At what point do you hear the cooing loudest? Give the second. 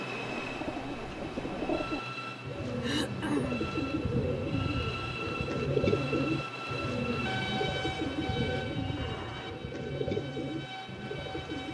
6 s.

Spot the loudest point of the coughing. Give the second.
3 s.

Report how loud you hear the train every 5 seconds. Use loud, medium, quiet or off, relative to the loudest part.
loud, loud, medium.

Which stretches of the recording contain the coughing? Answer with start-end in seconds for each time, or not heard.
2.8-3.8, 8.9-9.6.